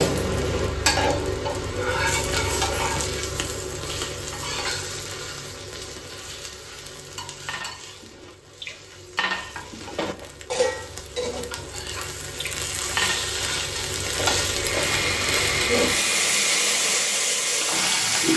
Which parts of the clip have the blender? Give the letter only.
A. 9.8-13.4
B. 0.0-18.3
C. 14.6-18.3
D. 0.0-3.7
C.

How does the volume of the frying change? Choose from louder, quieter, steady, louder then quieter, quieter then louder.
quieter then louder.